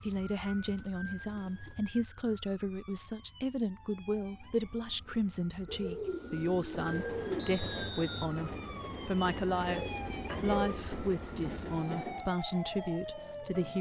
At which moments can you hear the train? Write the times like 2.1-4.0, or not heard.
6.7-12.3.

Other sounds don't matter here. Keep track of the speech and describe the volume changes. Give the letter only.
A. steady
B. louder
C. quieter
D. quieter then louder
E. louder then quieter
A.